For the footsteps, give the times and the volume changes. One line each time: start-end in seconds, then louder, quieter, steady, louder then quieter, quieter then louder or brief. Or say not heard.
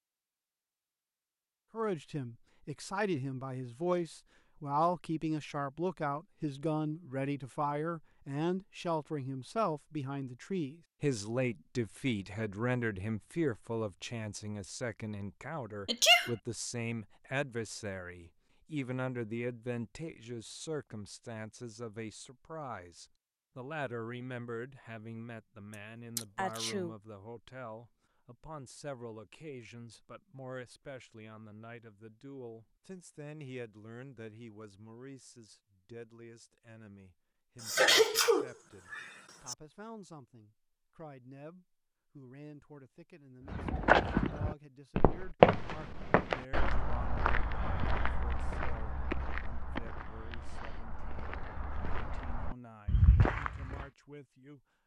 43.5-53.9 quieter then louder.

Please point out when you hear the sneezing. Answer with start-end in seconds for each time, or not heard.
15.8-16.3, 26.1-26.9, 37.6-39.5.